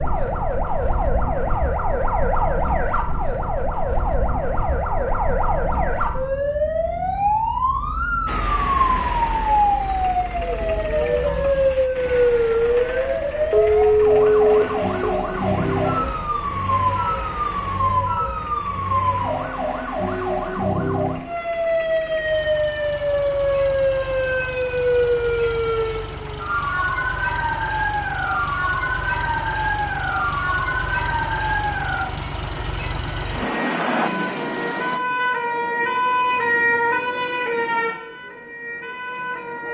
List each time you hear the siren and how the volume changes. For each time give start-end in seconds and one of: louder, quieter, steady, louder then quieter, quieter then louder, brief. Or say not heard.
0.0-39.7 steady.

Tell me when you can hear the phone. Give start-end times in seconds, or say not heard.
13.5-15.2.